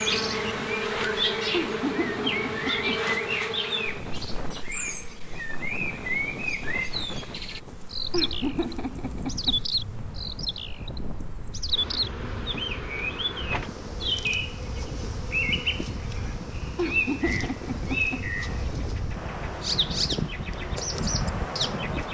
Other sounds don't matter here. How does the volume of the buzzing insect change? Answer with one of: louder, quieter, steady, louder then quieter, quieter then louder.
quieter then louder.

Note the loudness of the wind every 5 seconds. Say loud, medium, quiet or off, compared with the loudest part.
medium, medium, medium, medium, loud.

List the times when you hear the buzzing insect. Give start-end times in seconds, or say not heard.
0.0-22.0.